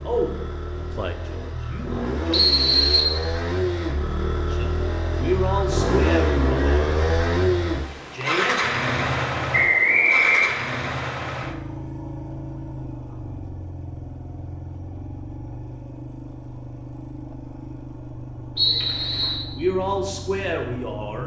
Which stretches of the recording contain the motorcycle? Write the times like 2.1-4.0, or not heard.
0.0-21.2.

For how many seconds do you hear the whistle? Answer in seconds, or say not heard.
3 s.